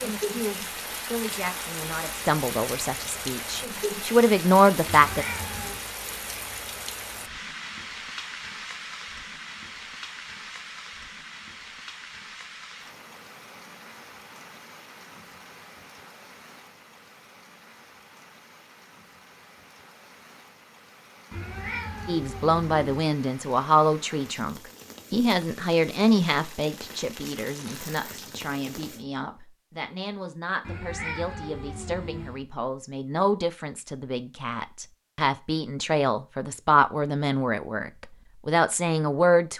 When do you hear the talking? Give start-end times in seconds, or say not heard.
0.0-5.2, 22.1-39.5.